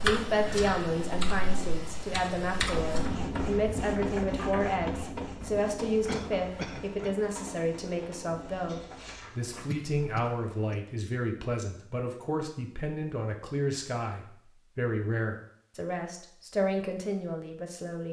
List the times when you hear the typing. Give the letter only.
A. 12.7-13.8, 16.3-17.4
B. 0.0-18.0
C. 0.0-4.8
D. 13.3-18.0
C.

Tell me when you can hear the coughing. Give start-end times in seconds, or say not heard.
6.0-7.2, 9.7-10.8.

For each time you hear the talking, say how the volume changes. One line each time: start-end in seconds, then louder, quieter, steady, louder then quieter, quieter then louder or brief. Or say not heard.
0.0-18.0 steady.